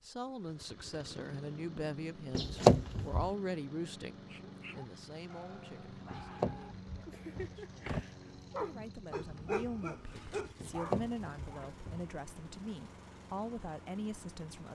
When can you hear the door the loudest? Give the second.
3 s.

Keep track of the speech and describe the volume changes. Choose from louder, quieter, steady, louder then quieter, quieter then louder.
quieter then louder.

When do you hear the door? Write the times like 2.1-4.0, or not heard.
2.4-3.3, 6.1-8.1, 10.6-12.1.